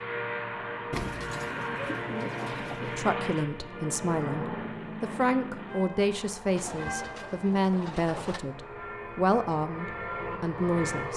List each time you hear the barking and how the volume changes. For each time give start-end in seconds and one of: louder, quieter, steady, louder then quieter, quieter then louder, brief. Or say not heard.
not heard.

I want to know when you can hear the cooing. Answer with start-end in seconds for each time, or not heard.
0.9-3.1, 6.5-8.4.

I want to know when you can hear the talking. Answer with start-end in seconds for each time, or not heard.
2.9-11.1.